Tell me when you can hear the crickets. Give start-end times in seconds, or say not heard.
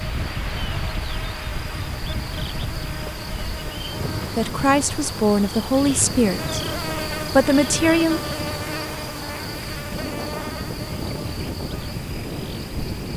0.0-13.1.